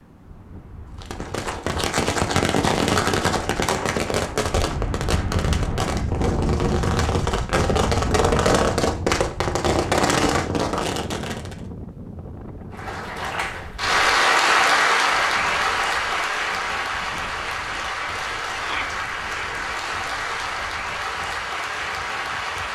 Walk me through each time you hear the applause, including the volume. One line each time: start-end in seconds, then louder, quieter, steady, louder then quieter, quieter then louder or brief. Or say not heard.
12.7-22.7 quieter.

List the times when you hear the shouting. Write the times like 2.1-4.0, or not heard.
18.6-19.0.